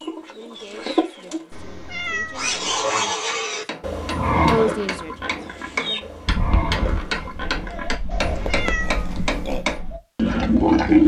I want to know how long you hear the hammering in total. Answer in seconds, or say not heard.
6 s.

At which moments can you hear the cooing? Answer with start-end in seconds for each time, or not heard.
0.0-1.6, 5.5-11.0.